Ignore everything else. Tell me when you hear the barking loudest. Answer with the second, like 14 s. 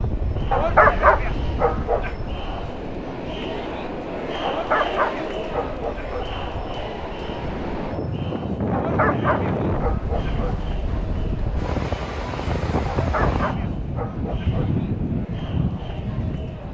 1 s.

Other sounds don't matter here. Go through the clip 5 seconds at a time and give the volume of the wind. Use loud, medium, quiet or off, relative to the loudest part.
medium, loud, loud, loud.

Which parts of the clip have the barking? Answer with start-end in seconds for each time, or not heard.
0.5-2.1, 4.5-6.3, 8.7-10.6, 12.8-14.8.